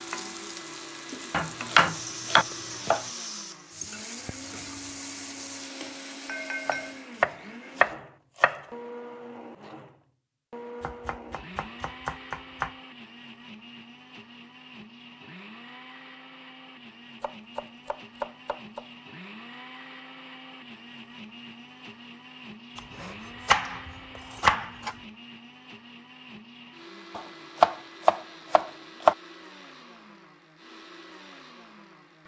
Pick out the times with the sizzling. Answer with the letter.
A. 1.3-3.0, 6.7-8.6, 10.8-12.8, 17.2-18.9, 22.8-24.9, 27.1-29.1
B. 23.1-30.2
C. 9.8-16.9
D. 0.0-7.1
D.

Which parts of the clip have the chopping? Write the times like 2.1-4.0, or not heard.
1.3-3.0, 6.7-8.6, 10.8-12.8, 17.2-18.9, 22.8-24.9, 27.1-29.1.